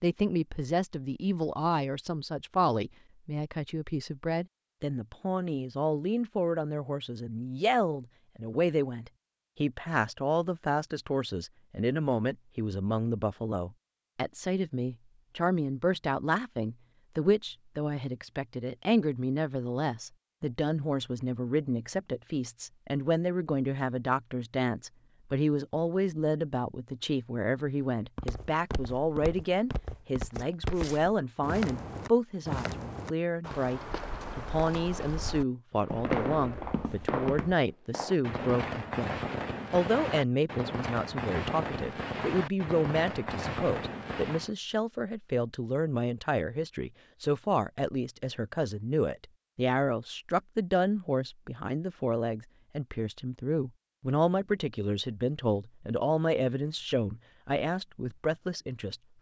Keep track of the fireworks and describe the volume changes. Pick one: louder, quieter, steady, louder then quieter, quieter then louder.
steady.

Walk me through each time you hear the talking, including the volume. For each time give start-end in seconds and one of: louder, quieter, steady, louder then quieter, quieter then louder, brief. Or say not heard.
0.0-59.0 steady.